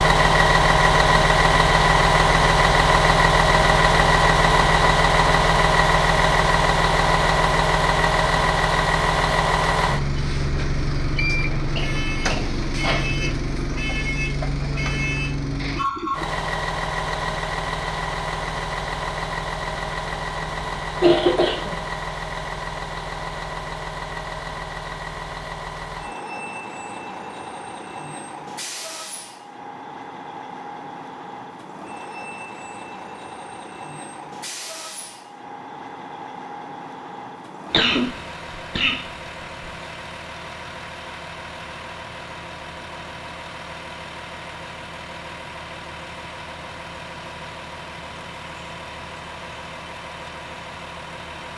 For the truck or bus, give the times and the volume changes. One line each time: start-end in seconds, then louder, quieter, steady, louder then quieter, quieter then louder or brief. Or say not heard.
0.0-51.5 quieter.